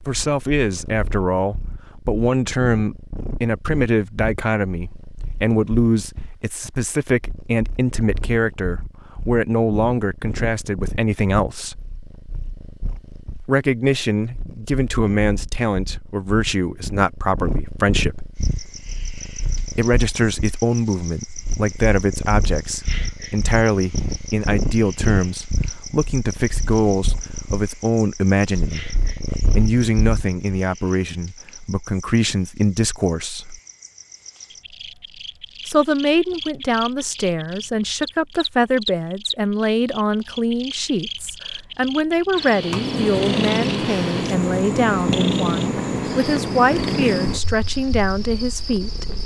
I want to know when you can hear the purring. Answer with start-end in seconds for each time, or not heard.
0.0-30.4, 42.5-49.2.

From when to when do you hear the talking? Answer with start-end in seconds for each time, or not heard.
0.1-11.8, 13.4-18.3, 19.7-33.6, 35.6-49.1.